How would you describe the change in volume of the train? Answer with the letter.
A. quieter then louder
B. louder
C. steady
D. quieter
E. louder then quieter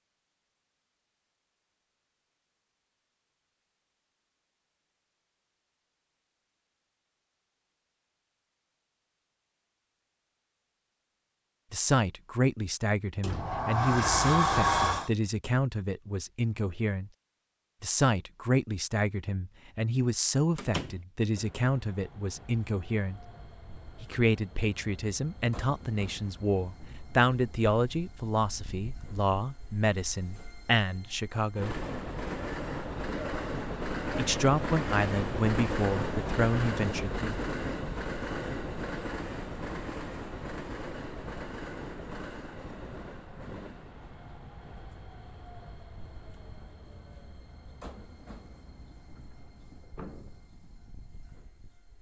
E.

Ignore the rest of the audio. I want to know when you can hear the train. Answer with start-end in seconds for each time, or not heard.
21.4-51.9.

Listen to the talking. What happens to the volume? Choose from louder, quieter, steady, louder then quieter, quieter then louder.
steady.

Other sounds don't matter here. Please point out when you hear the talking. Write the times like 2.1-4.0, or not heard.
11.7-17.1, 17.8-23.2, 24.0-31.8, 34.1-37.4.